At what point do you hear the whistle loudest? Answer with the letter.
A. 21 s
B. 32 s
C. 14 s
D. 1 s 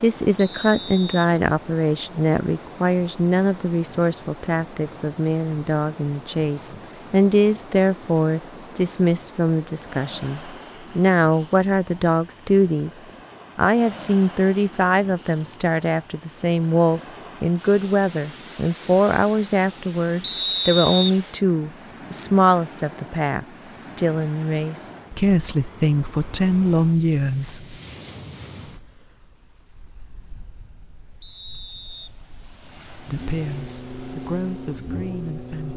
A.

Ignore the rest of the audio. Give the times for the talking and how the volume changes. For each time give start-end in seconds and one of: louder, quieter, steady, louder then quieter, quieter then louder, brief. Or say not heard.
0.0-27.8 steady
33.0-35.7 brief.